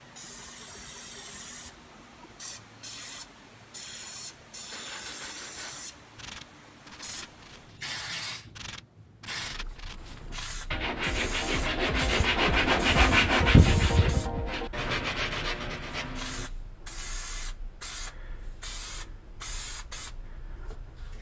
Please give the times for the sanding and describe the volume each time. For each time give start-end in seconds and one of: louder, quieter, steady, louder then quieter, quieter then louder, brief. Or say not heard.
4.7-16.5 louder then quieter.